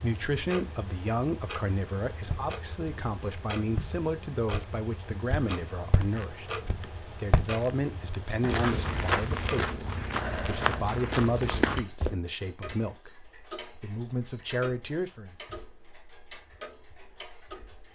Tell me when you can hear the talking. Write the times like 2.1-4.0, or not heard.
0.0-13.2, 13.8-15.3.